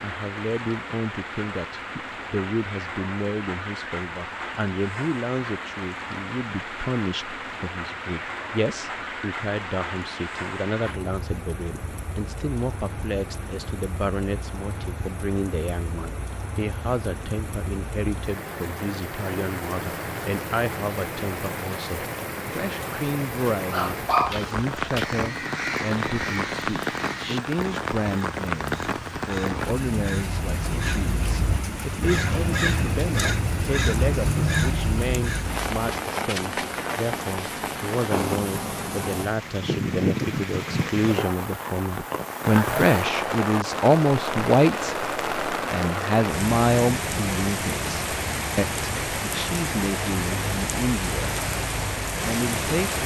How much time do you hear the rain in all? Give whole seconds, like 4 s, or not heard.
53 s.